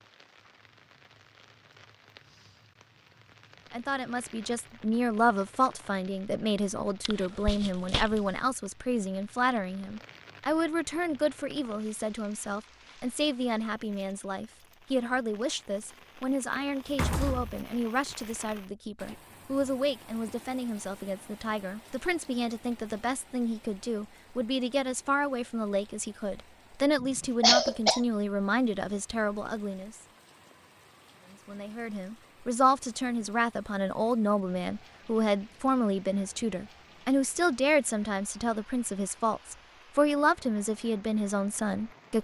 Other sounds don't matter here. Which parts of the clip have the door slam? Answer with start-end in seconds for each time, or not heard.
16.9-17.6.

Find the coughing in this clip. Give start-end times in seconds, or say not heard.
7.0-8.4, 27.0-28.0.